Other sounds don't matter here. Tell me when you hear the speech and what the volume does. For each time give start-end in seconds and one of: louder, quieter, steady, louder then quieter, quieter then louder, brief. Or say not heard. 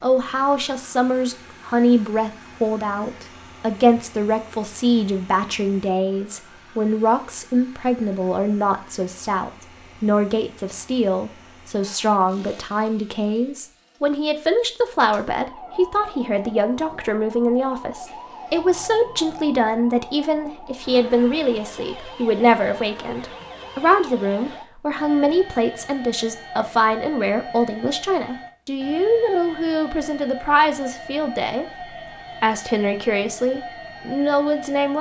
0.0-34.9 steady.